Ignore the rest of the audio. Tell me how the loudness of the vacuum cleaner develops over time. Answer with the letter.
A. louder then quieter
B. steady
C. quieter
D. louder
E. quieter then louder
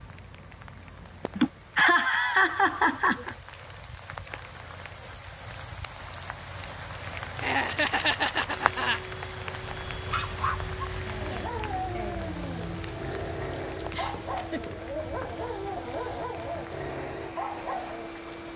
B.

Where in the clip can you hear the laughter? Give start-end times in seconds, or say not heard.
1.4-3.4, 7.4-9.0, 13.9-14.7.